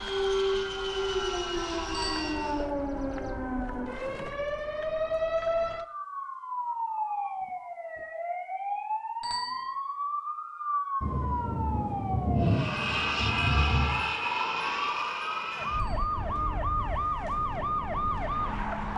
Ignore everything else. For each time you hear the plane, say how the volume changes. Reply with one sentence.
You can hear the plane briefly from 0.0 to 2.7 s; and from 12.4 to 18.9 s, getting quieter.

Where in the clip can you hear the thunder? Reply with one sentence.
You can hear the thunder from 11.0 to 14.1 s.